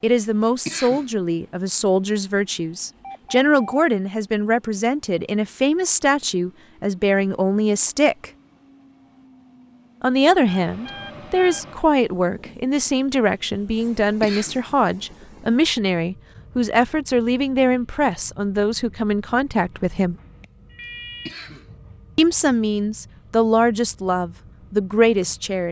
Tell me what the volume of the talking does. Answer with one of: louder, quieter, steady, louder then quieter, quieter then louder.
steady.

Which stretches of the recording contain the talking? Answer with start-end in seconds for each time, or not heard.
0.0-8.3, 10.0-20.1, 22.1-25.6.